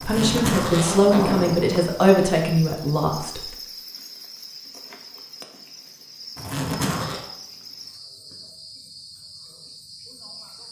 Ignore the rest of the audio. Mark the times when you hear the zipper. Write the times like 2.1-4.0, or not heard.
0.0-2.0, 6.3-7.2.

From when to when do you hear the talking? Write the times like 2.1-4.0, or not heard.
0.1-3.5.